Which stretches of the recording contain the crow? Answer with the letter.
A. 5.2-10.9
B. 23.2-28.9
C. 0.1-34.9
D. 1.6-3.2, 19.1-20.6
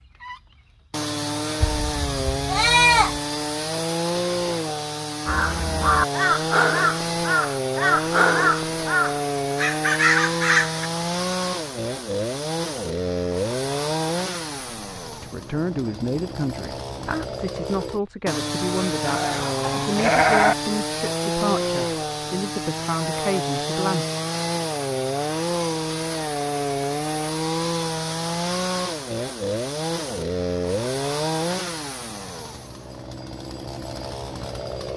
A.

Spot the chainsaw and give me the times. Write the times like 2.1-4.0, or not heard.
0.1-34.9.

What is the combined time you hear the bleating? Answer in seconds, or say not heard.
3 s.